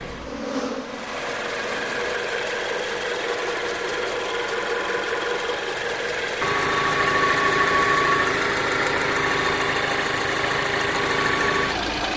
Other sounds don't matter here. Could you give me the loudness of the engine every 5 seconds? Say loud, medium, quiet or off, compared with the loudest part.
medium, loud, loud.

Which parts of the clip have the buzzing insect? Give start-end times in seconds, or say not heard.
0.0-2.0.